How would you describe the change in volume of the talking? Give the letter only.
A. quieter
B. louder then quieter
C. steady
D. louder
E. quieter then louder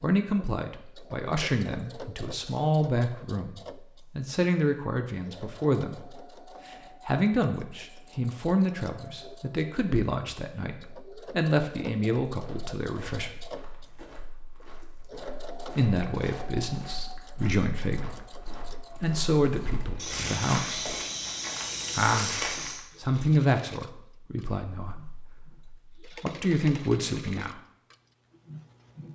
C.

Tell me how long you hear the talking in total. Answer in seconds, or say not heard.
24 s.